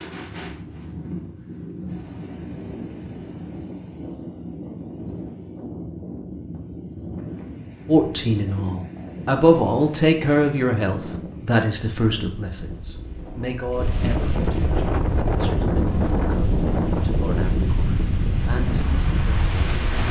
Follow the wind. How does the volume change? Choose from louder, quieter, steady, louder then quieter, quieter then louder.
louder.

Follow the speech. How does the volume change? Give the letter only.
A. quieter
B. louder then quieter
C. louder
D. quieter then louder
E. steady
A.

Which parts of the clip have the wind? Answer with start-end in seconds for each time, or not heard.
0.0-20.0.